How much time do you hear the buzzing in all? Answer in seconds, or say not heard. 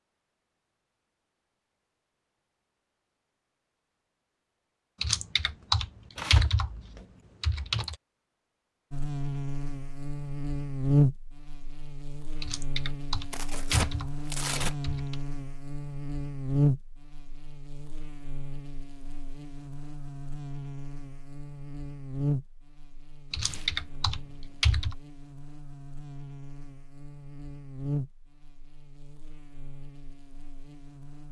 22 s.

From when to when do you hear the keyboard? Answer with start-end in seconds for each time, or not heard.
5.0-8.0, 12.4-15.2, 23.3-24.9.